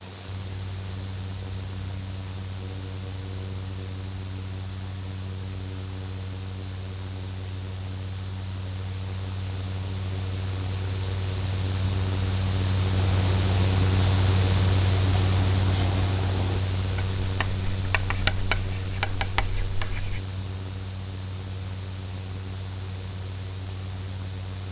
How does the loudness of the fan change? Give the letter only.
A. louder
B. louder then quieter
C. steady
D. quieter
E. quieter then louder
B.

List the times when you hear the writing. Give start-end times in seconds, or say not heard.
12.9-20.2.